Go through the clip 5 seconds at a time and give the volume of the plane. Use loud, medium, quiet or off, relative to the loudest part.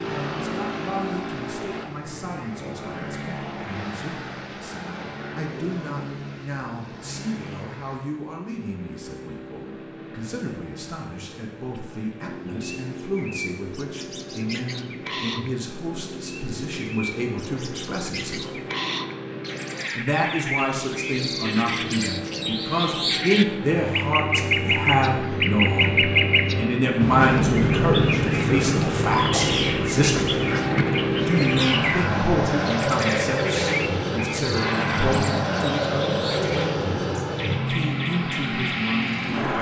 medium, quiet, quiet, quiet, medium, loud, loud, loud.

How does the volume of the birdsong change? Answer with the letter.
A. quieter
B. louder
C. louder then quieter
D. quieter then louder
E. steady
C.